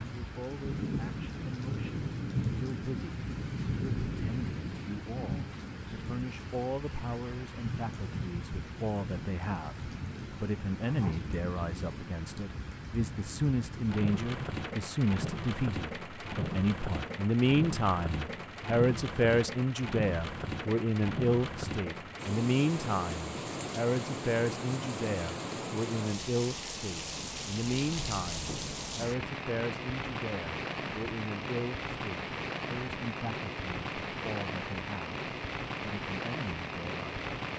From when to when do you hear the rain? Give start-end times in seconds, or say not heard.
0.0-37.5.